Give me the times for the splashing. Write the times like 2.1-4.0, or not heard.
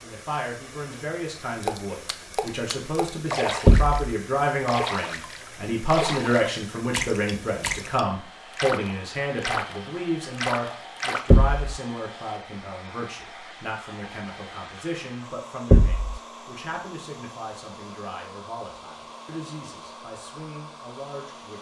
1.6-11.4.